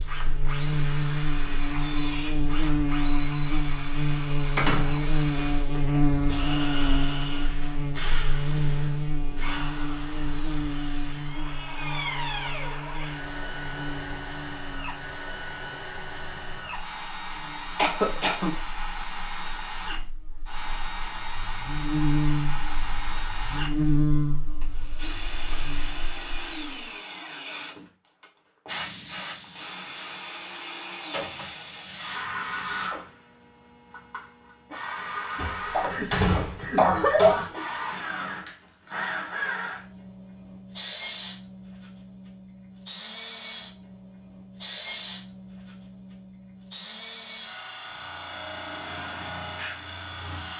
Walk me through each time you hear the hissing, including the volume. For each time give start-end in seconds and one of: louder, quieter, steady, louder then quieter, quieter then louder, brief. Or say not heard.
28.6-32.9 quieter then louder.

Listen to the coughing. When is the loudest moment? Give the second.
37 s.